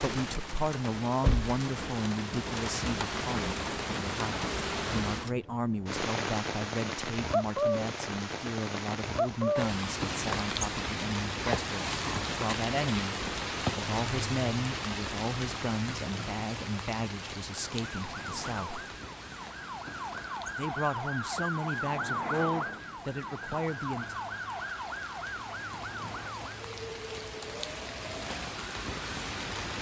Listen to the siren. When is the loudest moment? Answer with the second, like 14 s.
22 s.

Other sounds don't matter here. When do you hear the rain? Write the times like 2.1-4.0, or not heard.
0.0-29.7.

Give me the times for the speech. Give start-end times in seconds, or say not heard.
0.0-18.9, 20.6-24.2.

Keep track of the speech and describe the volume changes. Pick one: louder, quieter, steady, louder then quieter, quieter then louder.
steady.